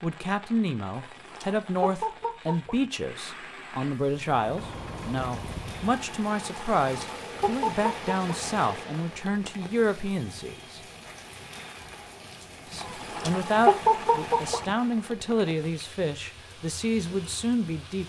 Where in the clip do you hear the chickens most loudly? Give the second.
14 s.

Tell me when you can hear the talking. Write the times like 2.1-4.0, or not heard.
0.0-10.8, 12.7-18.0.